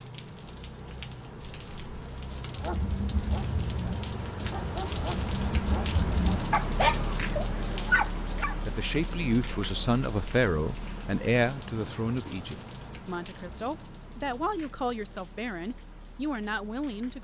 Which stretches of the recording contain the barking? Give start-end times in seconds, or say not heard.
2.5-8.6.